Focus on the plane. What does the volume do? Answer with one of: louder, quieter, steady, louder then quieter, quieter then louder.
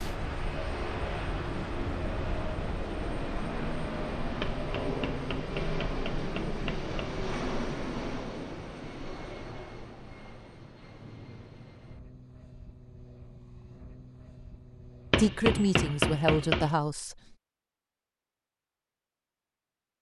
quieter.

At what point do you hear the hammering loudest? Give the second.
16 s.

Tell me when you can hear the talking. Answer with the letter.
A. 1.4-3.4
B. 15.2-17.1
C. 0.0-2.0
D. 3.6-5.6
B.